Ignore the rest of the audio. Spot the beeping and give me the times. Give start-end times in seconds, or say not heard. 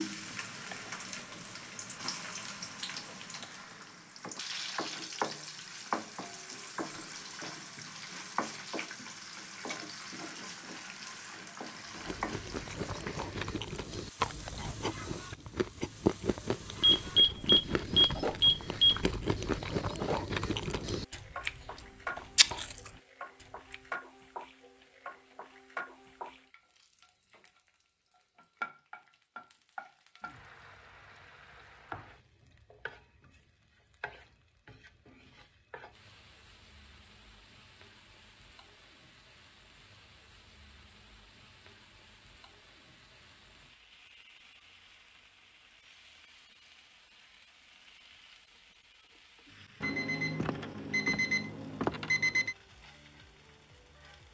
16.8-19.0, 49.8-52.5.